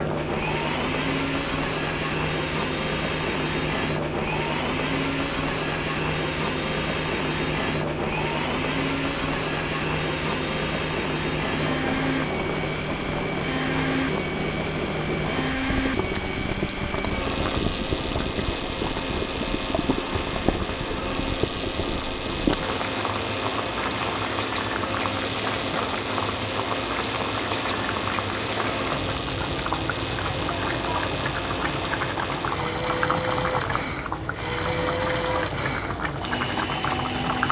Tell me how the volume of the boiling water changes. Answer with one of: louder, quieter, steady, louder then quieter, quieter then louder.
steady.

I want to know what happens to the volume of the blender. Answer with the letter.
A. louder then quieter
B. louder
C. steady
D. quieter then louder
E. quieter
C.